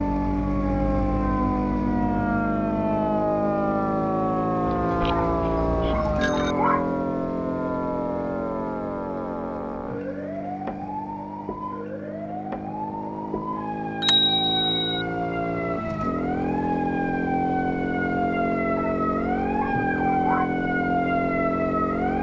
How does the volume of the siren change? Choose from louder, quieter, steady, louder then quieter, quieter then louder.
quieter then louder.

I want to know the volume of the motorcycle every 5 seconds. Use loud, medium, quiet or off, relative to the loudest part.
loud, loud, medium, loud, loud.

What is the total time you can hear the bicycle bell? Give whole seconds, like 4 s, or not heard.
3 s.